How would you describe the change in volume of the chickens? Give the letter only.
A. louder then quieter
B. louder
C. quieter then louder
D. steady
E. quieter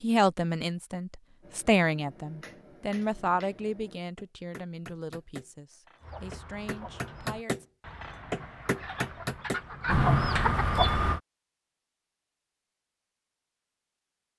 B.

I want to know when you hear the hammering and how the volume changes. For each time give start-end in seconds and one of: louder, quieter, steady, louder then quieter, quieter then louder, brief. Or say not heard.
1.4-9.7 louder.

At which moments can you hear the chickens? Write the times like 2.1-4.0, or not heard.
6.0-11.2.